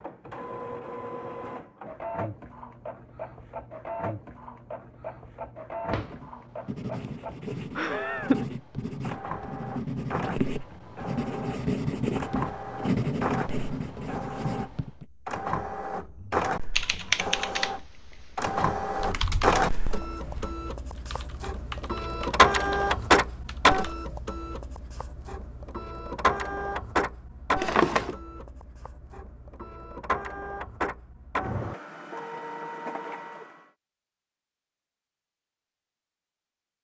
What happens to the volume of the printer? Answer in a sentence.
The loudness of the printer goes up, then down.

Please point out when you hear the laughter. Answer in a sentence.
You can hear the laughter from 7.8 to 8.6 s.